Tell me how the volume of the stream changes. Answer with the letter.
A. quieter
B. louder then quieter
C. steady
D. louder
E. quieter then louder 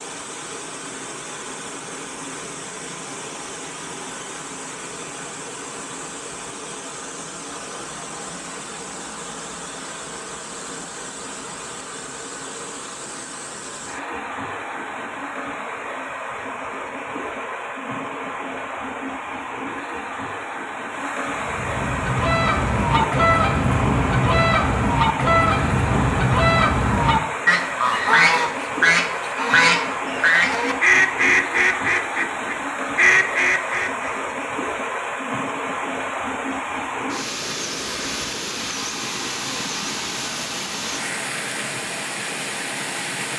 D.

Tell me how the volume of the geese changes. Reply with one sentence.
The volume of the geese stays about the same.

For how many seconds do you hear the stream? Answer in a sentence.
You can hear the stream for 43 seconds altogether.